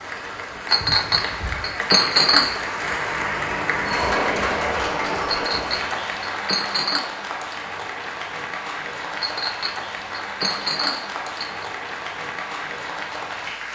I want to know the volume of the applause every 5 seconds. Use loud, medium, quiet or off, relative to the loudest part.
loud, loud, medium.